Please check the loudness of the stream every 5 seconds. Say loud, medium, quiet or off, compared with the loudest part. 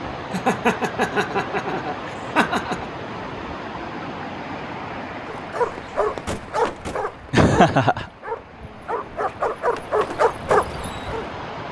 loud, medium, loud.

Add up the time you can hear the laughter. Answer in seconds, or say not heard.
3 s.